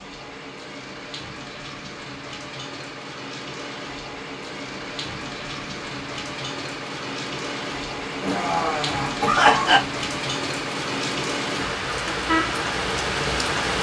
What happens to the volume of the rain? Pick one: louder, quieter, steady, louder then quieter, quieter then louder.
louder.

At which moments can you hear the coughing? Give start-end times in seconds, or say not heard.
8.2-9.8.